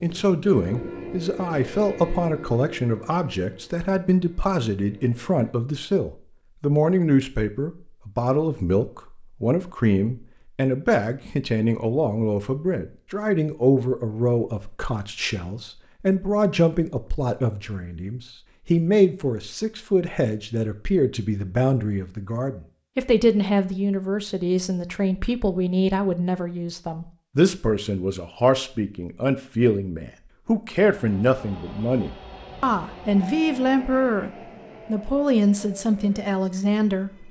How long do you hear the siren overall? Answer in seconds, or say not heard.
not heard.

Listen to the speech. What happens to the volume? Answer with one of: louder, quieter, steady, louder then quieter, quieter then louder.
steady.